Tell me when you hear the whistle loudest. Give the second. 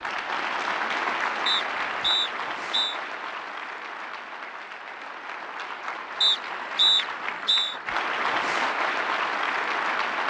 7 s.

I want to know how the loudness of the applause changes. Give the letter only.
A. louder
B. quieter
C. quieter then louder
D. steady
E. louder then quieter
C.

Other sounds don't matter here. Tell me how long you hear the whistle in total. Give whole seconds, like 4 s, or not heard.
3 s.